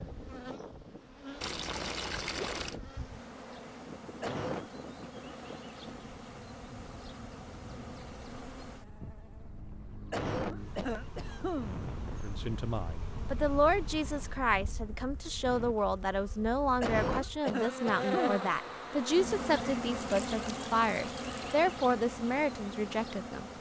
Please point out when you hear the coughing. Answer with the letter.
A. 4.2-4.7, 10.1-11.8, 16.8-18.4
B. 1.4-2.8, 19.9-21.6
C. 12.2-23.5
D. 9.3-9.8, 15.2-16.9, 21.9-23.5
A.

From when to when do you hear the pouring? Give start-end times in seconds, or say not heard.
1.4-2.8, 19.9-21.6.